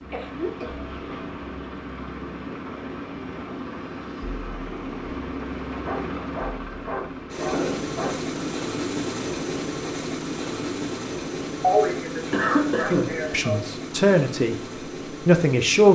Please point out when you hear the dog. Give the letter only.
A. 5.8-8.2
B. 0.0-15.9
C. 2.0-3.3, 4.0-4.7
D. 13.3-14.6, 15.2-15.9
A.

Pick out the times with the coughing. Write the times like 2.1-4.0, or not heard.
0.1-0.8, 7.5-8.5, 11.6-13.6.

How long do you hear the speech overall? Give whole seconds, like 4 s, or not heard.
2 s.